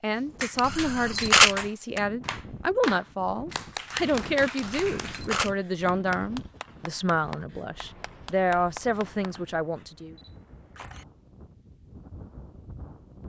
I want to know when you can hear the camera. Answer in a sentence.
You can hear the camera from 0.6 to 1.6 s, from 4.5 to 5.5 s and from 9.2 to 11.1 s.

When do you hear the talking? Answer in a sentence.
You can hear the talking from 0.0 to 10.2 s.